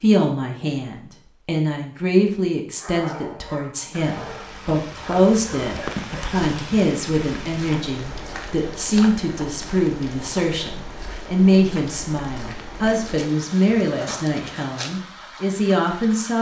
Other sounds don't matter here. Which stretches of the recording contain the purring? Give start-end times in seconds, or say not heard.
not heard.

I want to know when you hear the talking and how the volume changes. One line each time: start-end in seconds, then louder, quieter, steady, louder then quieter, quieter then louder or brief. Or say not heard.
0.0-16.3 steady.